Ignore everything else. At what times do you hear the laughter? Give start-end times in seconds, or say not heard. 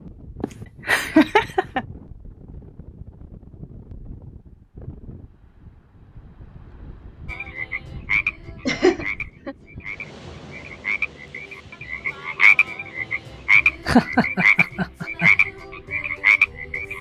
0.4-1.9, 8.7-9.6, 13.8-15.3.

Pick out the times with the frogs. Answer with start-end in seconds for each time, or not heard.
7.3-16.9.